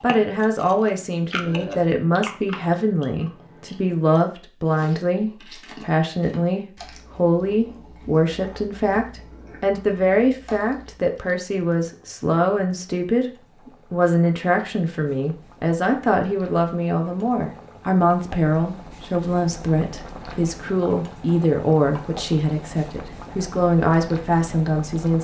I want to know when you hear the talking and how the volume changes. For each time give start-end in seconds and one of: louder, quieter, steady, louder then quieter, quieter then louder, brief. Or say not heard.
0.0-25.1 steady.